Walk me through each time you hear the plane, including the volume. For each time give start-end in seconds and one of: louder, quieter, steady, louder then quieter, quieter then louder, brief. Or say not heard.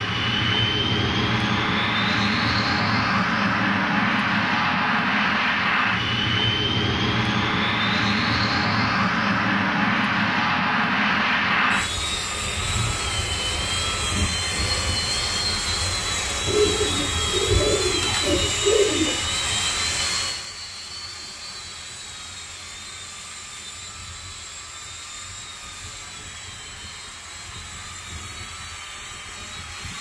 0.0-29.9 quieter.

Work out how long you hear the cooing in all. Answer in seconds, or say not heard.
3 s.